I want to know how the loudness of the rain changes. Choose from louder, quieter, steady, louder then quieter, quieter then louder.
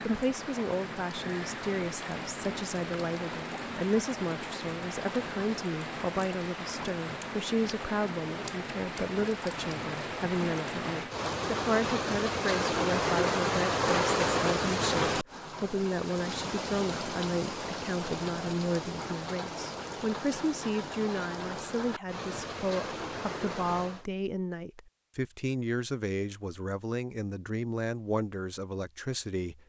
louder then quieter.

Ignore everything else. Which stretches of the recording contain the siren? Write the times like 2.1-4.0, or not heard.
not heard.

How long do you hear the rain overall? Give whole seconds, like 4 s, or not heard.
24 s.